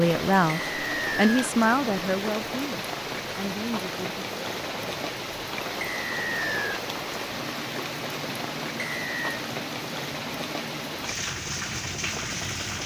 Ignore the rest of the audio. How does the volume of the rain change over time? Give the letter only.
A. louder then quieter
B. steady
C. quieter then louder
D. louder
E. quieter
B.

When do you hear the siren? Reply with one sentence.
You can't hear the siren here.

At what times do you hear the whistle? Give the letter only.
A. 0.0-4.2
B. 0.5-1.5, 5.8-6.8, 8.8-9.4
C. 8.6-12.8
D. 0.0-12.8
B.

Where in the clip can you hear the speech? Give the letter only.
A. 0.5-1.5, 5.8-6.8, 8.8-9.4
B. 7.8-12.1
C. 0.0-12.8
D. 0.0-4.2
D.